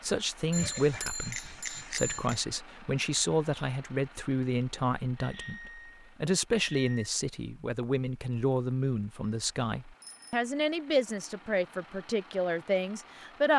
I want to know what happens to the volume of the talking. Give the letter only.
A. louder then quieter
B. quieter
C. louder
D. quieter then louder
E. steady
E.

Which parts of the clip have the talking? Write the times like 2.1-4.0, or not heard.
0.0-13.5.